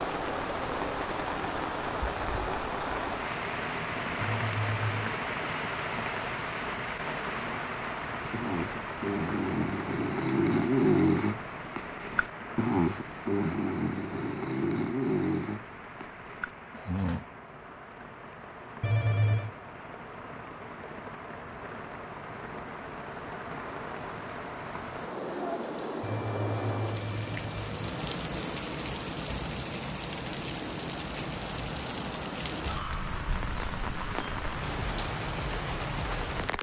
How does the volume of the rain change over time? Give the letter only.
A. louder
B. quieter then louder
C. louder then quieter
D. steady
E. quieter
B.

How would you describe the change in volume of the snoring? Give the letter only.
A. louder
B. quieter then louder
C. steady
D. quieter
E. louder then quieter
E.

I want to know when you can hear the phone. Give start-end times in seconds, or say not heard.
4.2-5.1, 18.8-19.5, 26.0-27.7.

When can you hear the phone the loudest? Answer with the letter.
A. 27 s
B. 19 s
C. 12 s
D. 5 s
B.